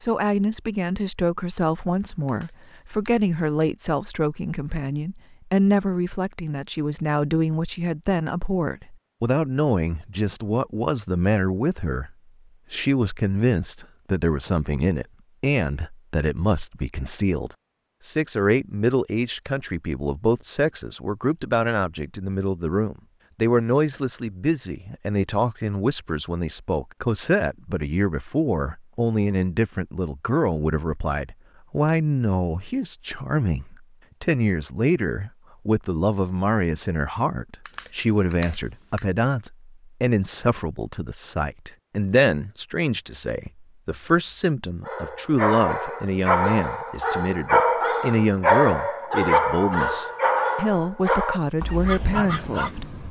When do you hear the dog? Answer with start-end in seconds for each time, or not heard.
44.9-53.0.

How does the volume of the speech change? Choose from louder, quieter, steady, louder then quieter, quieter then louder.
steady.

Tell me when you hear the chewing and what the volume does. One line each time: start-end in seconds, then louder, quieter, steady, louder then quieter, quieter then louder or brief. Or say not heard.
not heard.